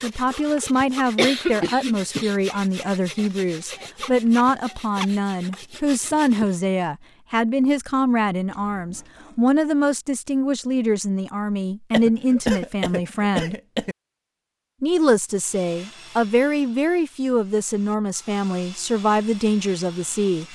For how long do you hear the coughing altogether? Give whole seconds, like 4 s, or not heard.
3 s.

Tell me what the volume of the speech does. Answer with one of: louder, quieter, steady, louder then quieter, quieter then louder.
steady.